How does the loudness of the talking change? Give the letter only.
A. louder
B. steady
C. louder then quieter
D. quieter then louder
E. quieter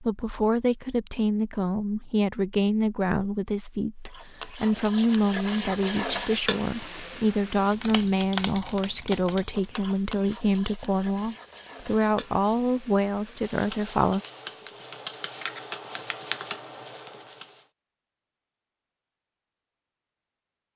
B.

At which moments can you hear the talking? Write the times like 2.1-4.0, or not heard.
0.0-14.2.